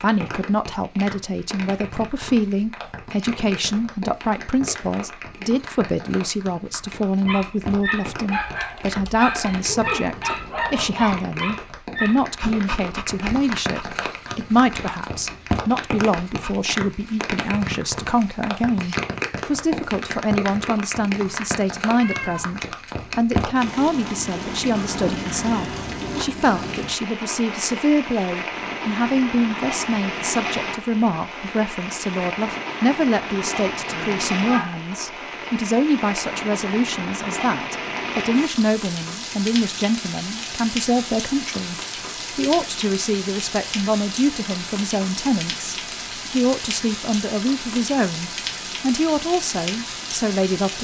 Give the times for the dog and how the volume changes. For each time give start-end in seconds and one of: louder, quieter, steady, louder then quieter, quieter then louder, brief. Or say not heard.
7.2-16.6 quieter.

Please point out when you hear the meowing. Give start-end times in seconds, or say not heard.
9.6-10.9, 22.0-22.6, 33.9-34.8.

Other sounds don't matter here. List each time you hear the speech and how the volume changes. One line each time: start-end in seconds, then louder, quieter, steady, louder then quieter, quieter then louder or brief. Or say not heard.
0.0-50.8 steady.